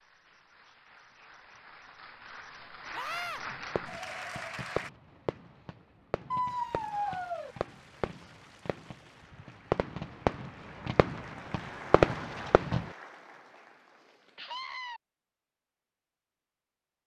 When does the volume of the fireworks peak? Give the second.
12 s.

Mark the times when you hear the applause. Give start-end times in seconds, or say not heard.
0.0-4.9, 6.5-14.8.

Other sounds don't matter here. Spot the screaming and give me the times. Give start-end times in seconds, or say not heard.
2.9-3.4, 6.3-7.5, 14.3-15.0.